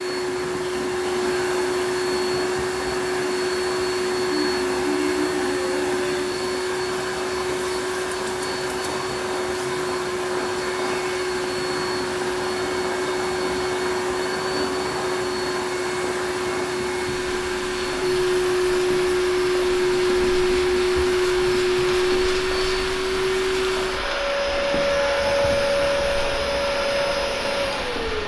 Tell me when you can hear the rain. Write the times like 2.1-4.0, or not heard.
0.1-28.2.